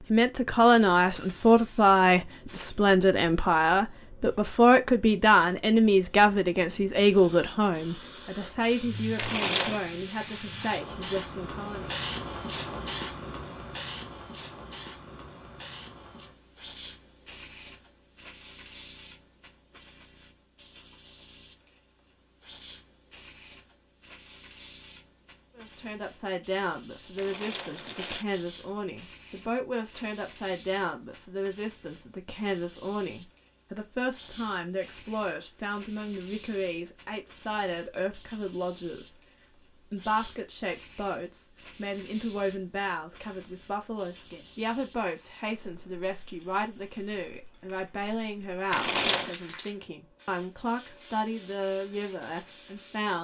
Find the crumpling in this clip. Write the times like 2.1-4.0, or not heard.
9.2-9.8, 27.1-28.2, 48.7-49.4.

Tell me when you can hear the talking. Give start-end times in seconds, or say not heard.
0.1-11.9, 25.6-39.2, 39.9-53.1.